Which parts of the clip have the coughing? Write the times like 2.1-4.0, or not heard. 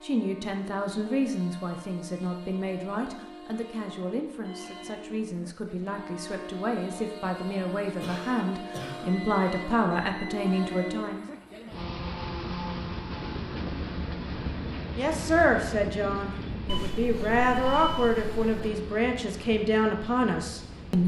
8.0-9.1.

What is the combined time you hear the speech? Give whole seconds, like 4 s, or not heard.
17 s.